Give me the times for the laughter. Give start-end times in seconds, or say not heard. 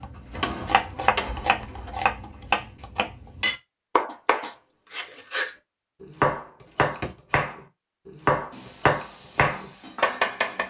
not heard.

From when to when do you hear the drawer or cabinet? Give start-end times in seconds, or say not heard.
0.3-1.9, 6.7-7.2.